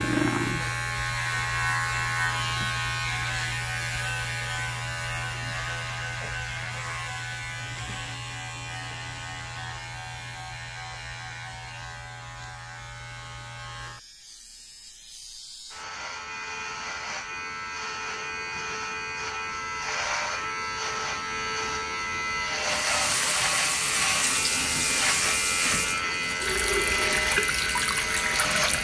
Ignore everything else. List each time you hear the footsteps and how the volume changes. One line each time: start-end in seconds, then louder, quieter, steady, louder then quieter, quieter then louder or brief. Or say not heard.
not heard.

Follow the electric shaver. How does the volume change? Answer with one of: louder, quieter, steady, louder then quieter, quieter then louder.
quieter then louder.